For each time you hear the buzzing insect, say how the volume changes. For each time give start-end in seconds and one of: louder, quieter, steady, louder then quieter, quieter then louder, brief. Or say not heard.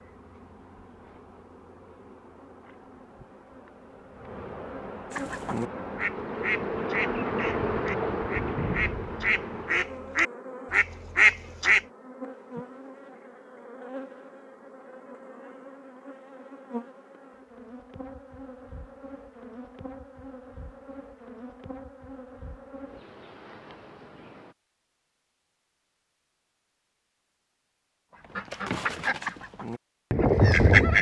0.0-24.6 louder then quieter.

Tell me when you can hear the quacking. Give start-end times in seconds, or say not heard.
5.1-11.8, 28.1-30.9.